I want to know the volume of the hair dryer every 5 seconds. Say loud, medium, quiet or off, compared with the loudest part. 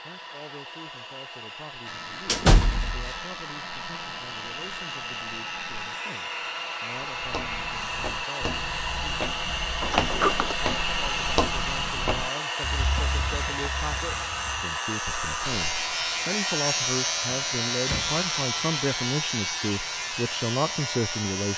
medium, loud, loud, medium, medium.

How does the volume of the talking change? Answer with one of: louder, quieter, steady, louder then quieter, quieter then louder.
louder.